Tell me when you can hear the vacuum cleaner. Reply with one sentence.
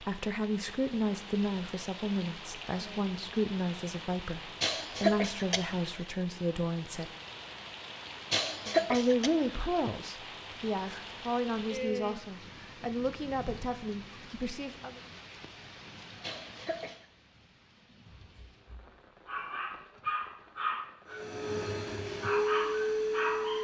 The vacuum cleaner can be heard from 21.1 to 23.5 s.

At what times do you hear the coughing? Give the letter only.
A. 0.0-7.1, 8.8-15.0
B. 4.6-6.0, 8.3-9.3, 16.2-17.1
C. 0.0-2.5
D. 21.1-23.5
B.